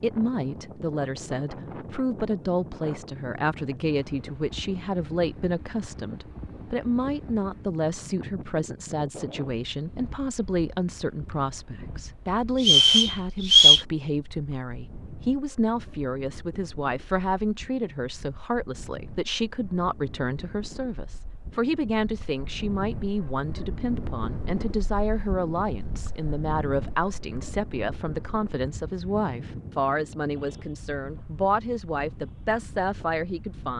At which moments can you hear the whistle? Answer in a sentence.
The whistle can be heard from 12.6 to 13.8 s.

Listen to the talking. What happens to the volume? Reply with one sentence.
The volume of the talking stays about the same.